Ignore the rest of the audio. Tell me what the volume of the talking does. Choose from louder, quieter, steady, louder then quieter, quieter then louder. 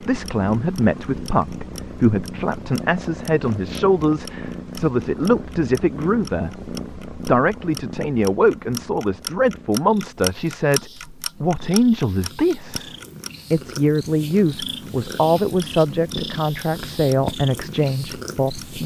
steady.